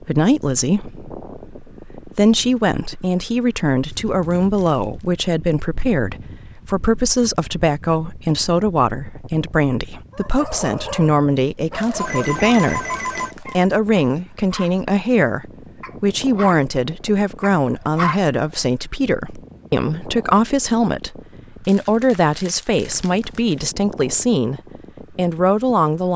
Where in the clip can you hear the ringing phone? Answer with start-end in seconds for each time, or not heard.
11.9-13.3.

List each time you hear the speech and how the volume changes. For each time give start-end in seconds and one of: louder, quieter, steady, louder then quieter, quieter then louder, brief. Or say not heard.
0.0-26.1 steady.